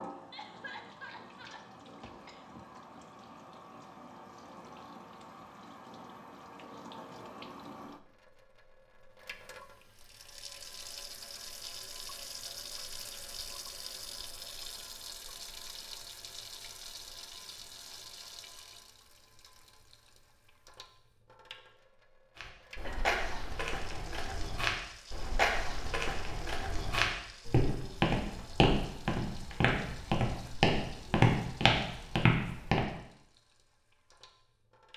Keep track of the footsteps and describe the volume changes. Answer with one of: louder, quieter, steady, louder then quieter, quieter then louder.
louder.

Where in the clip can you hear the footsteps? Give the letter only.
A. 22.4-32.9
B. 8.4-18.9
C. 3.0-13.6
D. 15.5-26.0
A.